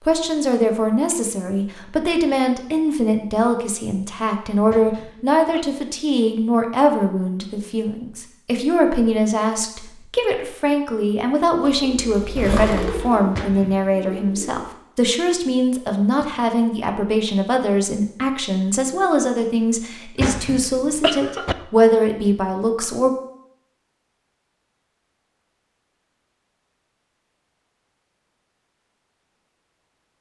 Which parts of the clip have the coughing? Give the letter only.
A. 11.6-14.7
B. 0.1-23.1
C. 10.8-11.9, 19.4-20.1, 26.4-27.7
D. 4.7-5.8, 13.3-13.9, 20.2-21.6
D.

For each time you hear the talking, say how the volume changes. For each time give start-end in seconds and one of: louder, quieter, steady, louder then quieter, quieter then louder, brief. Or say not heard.
0.1-23.1 steady.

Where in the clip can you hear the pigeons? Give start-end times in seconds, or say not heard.
11.6-14.7.